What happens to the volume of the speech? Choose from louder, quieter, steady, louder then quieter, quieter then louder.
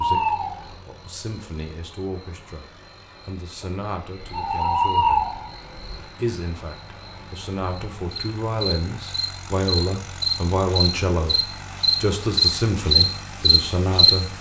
louder.